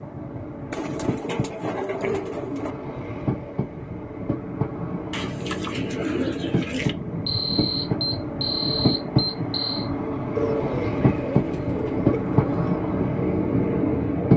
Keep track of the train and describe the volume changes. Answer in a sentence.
The volume of the train goes up.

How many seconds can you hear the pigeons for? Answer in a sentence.
The pigeons can be heard for 6 seconds in total.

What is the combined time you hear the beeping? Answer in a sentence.
The beeping can be heard for 3 seconds in total.